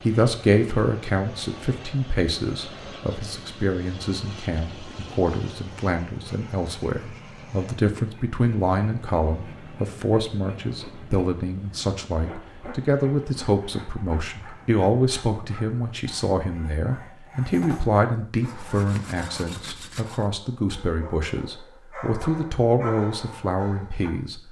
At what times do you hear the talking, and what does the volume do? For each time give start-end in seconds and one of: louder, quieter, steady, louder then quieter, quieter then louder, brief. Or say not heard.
0.0-24.4 steady.